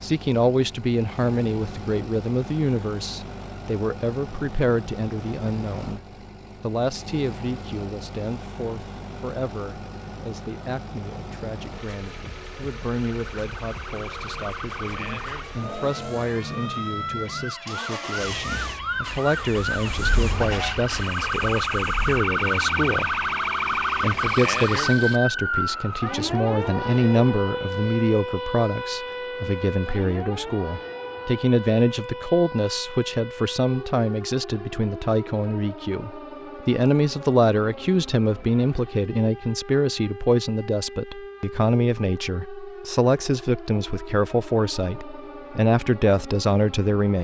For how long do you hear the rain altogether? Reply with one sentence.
You can't hear the rain here.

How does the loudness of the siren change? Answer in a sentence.
The volume of the siren goes up, then down.